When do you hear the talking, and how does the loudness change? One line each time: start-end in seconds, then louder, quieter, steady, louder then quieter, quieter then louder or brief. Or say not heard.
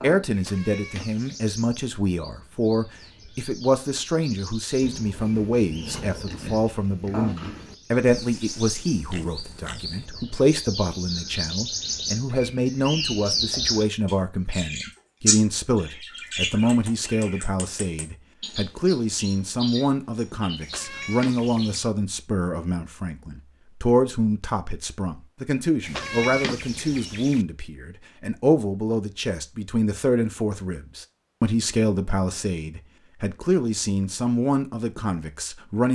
0.0-35.9 steady.